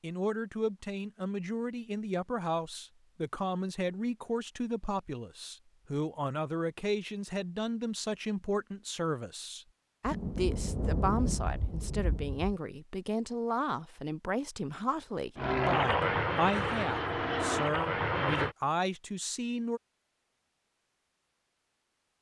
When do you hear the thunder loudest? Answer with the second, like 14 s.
11 s.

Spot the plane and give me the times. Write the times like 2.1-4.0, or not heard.
15.3-18.6.